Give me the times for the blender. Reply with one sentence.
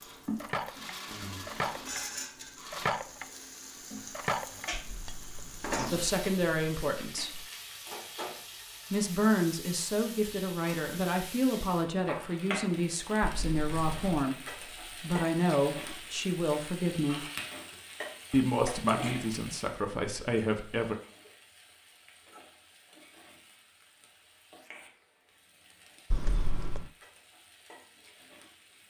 You can hear the blender from 0.0 to 2.9 s.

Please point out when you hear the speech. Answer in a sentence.
You can hear the speech from 5.9 to 7.5 s, from 8.9 to 14.4 s, from 15.0 to 17.2 s and from 18.3 to 20.9 s.